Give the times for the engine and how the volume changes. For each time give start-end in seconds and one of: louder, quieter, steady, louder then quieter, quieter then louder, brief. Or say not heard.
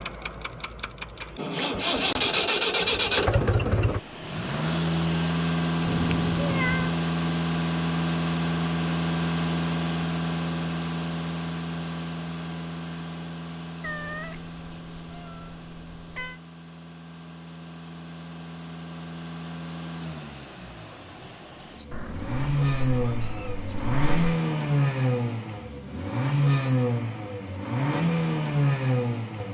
0.0-29.4 quieter then louder.